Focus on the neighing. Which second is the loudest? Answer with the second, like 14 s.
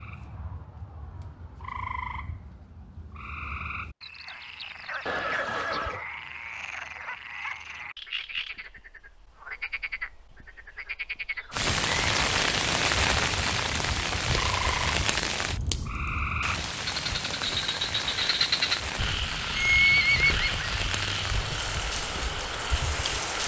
20 s.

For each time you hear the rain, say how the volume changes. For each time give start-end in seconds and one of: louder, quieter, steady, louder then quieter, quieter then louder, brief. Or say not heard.
11.5-23.4 quieter.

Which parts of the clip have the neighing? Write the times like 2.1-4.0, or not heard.
5.0-6.0, 19.6-20.6.